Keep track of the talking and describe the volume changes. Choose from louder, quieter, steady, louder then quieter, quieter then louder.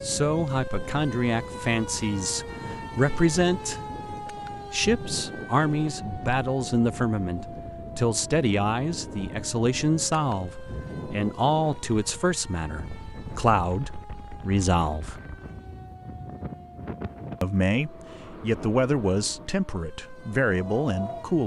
steady.